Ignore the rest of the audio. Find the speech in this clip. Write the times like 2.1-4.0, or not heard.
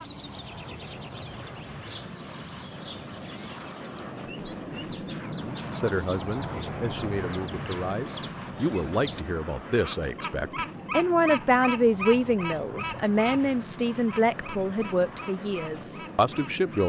5.8-16.8.